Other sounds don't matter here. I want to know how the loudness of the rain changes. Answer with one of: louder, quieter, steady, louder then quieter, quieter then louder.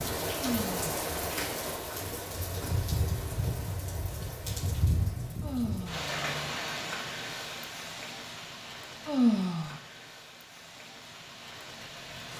quieter.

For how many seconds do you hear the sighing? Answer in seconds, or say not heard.
2 s.